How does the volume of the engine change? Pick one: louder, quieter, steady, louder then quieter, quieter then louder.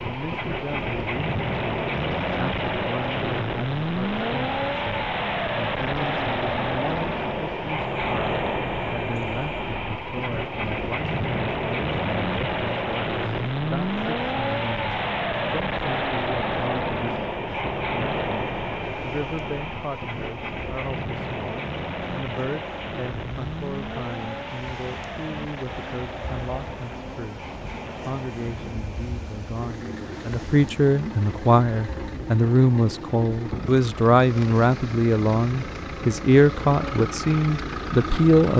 quieter.